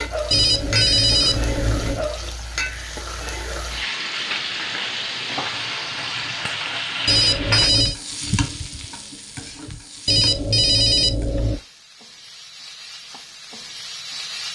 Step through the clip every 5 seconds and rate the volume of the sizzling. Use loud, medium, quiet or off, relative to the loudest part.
loud, loud, medium.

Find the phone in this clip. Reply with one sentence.
The phone can be heard from 0.3 to 2.1 s, from 7.0 to 8.0 s and from 10.1 to 11.6 s.